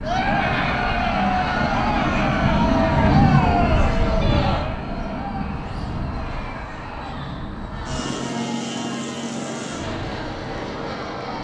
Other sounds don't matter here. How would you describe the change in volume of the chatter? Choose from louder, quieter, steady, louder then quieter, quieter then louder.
quieter.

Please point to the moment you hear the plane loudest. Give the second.
3 s.